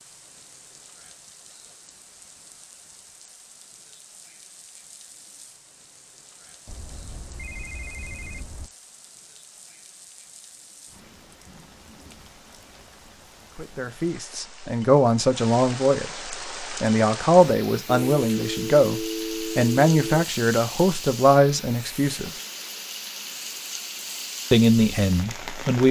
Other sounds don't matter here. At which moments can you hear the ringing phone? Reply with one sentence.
You can hear the ringing phone from 6.7 to 8.7 s and from 17.9 to 20.2 s.